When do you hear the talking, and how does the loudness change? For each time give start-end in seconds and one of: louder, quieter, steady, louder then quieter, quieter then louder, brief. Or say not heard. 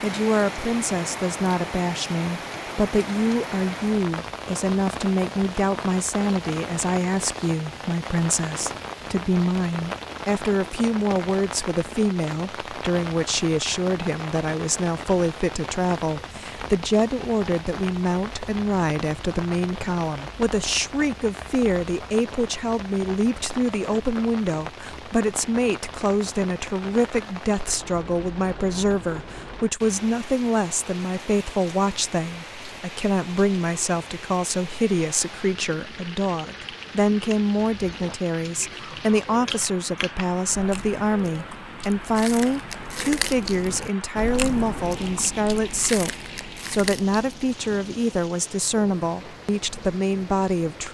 0.0-50.8 steady.